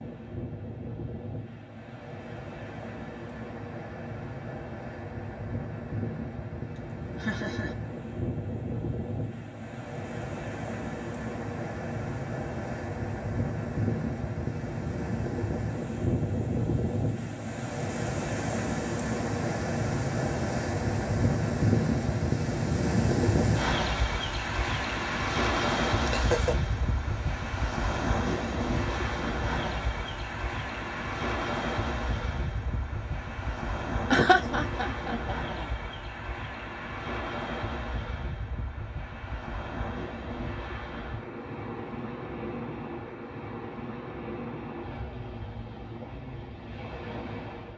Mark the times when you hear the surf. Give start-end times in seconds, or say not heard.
0.0-47.7.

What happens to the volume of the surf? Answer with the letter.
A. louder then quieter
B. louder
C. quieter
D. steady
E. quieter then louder
A.